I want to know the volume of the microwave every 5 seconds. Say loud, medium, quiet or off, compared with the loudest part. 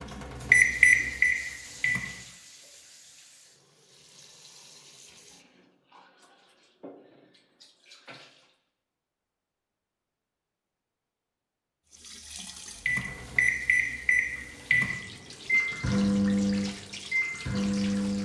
loud, off, medium, medium.